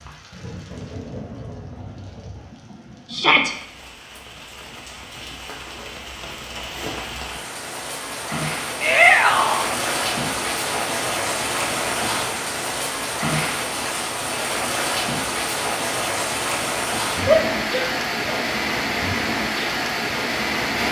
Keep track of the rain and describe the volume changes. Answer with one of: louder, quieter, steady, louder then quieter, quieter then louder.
louder.